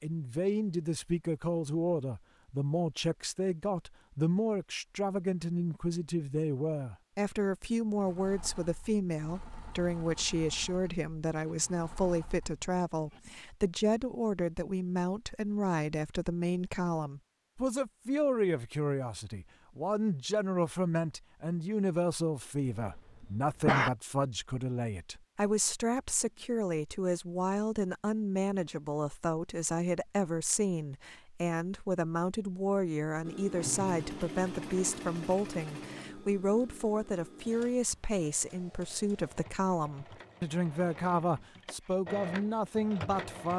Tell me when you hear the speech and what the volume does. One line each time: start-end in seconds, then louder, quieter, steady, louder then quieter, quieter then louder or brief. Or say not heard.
0.0-43.5 steady.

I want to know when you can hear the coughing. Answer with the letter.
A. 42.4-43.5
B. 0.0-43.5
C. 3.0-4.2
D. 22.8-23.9
D.